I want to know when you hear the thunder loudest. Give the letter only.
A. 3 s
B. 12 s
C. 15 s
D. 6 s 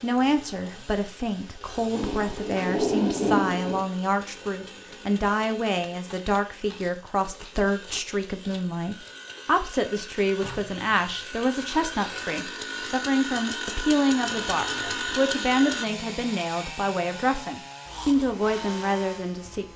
A.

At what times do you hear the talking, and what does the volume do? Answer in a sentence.
You can hear the talking from 0.0 to 19.7 s, at a steady volume.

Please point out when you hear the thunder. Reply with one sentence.
You can hear the thunder from 1.9 to 3.9 s.